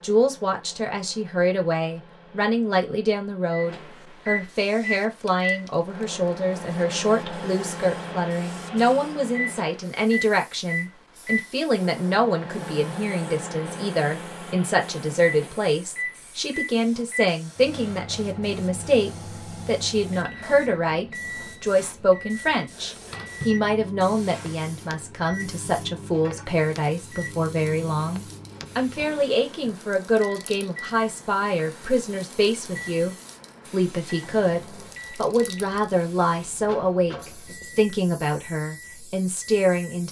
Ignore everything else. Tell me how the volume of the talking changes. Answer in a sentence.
The loudness of the talking stays about the same.